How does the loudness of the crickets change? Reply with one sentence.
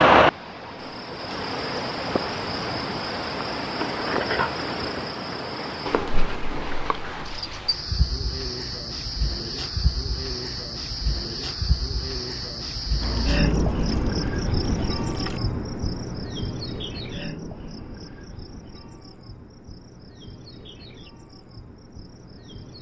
The volume of the crickets goes down.